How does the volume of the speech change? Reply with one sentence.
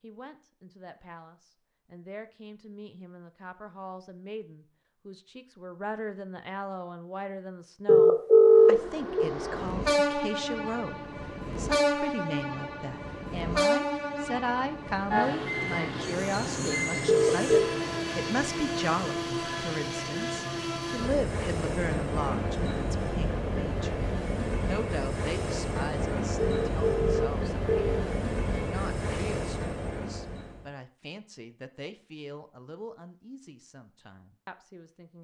The loudness of the speech goes up, then down.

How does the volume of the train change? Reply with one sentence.
The loudness of the train stays about the same.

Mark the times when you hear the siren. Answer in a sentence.
You can't hear the siren here.